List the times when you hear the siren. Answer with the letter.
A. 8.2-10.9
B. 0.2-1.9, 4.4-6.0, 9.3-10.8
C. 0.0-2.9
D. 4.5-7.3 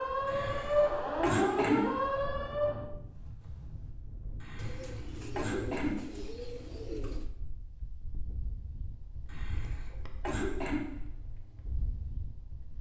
C.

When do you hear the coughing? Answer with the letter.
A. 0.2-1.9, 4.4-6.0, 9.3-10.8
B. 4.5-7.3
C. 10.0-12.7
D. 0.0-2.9
A.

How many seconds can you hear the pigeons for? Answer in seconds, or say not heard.
3 s.